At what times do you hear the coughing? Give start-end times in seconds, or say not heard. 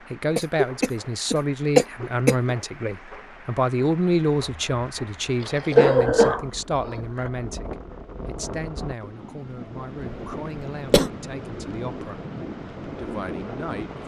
0.3-2.5, 5.4-7.3, 10.6-11.1.